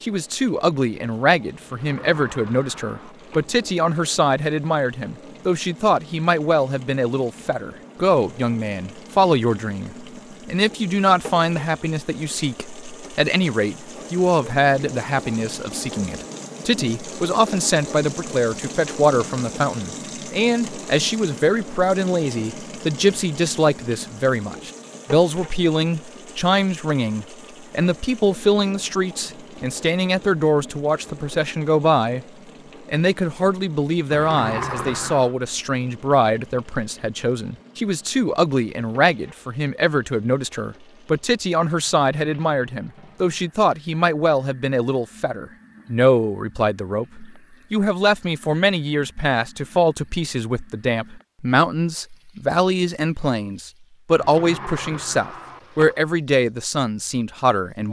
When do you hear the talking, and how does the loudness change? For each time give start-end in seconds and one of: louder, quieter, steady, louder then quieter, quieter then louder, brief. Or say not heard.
0.0-32.2 steady
32.9-57.8 steady.